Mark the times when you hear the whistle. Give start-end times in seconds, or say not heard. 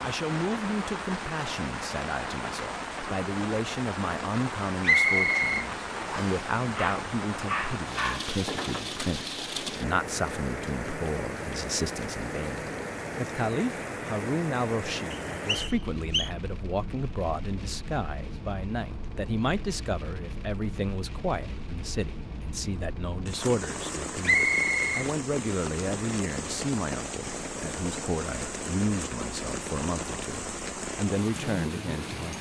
4.8-6.4, 15.1-16.3, 24.2-25.1.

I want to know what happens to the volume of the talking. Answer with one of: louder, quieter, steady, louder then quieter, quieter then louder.
steady.